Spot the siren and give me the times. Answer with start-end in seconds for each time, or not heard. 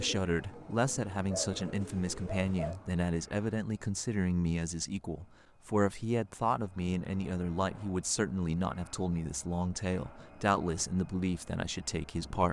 not heard.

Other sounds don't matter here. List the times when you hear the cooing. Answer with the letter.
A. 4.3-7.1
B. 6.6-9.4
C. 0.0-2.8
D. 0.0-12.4
C.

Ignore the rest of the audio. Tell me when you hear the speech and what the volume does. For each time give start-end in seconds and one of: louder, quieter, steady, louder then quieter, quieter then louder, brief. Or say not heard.
0.0-12.4 steady.